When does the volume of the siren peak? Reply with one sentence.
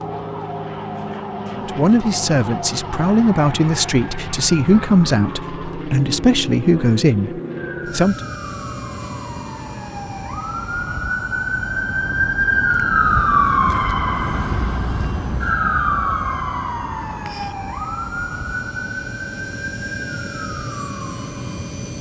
The loudest moment of the siren is at 13 seconds.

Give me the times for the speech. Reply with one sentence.
You can hear the speech from 1.6 to 8.2 s.